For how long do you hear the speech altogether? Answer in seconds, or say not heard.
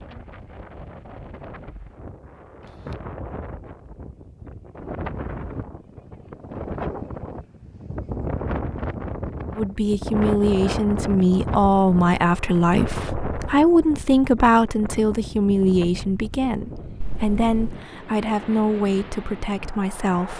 11 s.